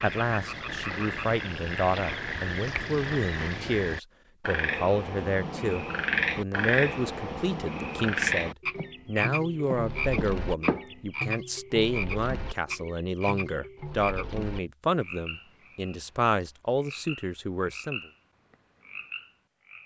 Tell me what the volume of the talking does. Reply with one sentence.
The loudness of the talking stays about the same.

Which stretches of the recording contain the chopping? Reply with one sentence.
The chopping can be heard from 8.8 to 11.1 s.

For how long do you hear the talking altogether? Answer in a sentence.
You can hear the talking for 18 seconds altogether.